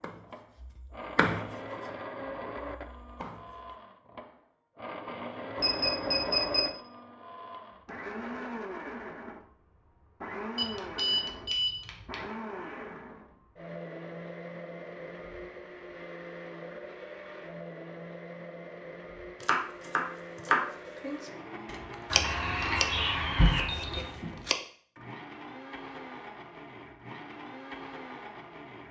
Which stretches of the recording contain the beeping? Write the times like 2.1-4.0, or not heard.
5.5-6.7, 10.6-12.2, 22.1-24.1.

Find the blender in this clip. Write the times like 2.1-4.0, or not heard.
0.2-28.8.